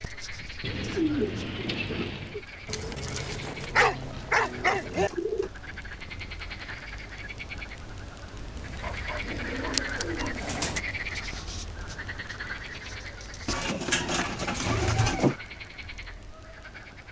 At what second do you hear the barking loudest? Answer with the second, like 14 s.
4 s.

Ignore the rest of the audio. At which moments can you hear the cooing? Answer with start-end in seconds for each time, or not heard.
0.6-2.5, 4.9-5.5, 8.6-10.8, 13.4-15.3.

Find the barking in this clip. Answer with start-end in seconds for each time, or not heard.
2.6-5.1, 8.8-10.3.